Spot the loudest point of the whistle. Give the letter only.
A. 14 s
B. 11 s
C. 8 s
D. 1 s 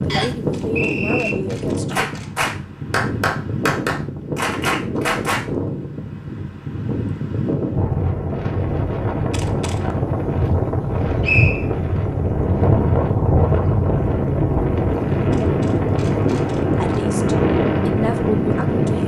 B.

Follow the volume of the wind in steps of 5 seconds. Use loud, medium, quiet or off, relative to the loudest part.
medium, medium, loud, loud.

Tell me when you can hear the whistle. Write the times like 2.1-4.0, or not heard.
0.1-1.4, 10.8-11.7.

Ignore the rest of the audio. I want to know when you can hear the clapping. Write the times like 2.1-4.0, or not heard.
1.9-5.5.